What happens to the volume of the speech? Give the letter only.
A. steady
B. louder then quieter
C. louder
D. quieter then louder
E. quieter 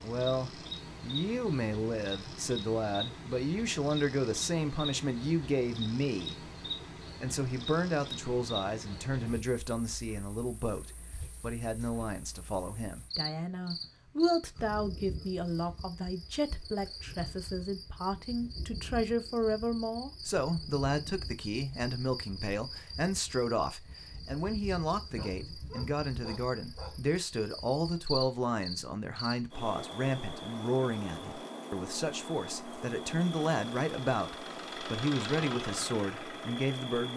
A.